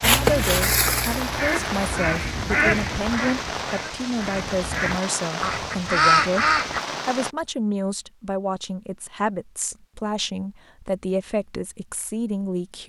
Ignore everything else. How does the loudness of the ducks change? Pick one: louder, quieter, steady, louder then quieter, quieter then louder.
quieter then louder.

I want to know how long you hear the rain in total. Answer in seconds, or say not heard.
7 s.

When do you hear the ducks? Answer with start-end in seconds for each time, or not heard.
0.0-6.8.